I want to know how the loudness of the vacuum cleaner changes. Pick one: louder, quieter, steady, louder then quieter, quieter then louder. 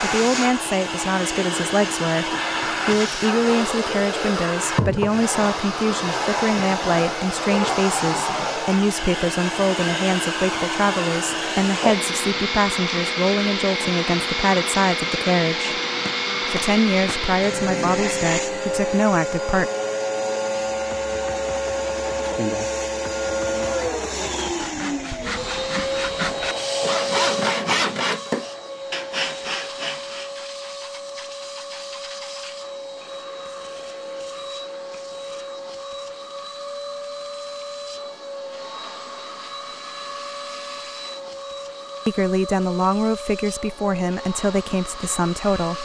quieter.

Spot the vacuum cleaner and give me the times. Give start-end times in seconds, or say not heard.
0.0-45.8.